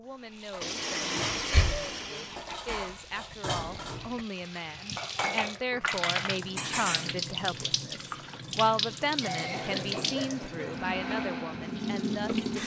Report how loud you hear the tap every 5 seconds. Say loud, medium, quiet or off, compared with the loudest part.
quiet, loud, loud.